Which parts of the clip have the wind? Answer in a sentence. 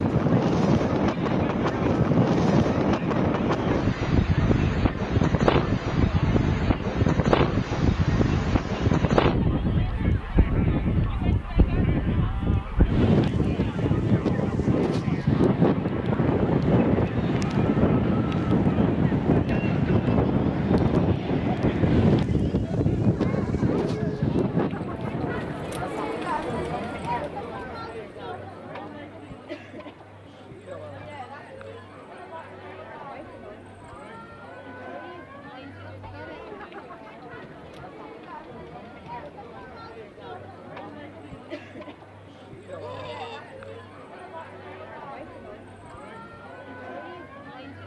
The wind can be heard from 0.0 to 25.8 s.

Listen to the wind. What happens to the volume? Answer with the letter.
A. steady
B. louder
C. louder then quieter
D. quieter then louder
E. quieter
A.